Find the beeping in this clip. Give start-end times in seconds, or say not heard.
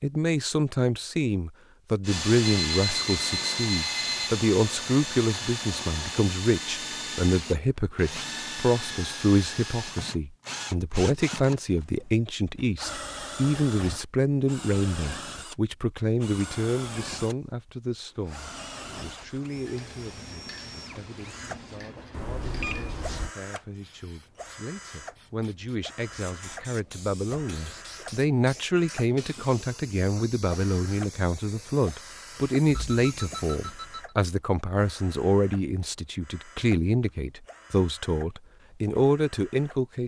2.5-4.3, 22.1-23.3, 32.6-34.1.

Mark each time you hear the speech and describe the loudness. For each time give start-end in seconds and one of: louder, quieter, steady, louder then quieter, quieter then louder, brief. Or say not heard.
0.0-40.0 quieter then louder.